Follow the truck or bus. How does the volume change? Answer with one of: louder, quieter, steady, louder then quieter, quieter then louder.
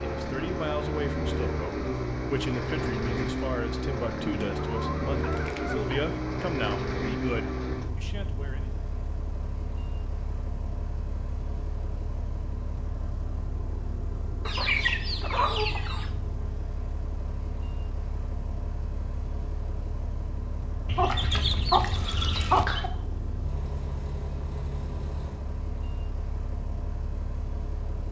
quieter.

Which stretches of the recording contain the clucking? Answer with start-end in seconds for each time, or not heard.
4.2-6.0, 14.4-16.1, 20.9-22.9.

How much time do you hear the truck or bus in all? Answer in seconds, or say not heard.
28 s.